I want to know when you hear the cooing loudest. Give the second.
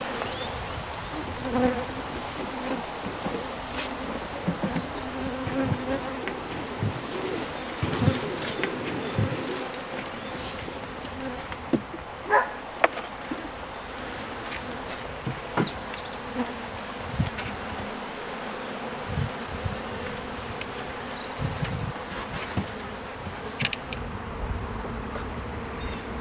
8 s.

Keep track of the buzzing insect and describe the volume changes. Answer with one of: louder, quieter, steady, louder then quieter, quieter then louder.
steady.